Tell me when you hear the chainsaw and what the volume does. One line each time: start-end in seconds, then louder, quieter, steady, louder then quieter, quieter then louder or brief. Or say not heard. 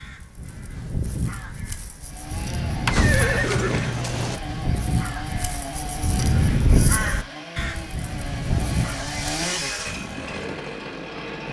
1.9-11.4 louder.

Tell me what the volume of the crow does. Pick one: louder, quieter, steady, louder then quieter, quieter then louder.
louder then quieter.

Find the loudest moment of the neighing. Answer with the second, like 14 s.
3 s.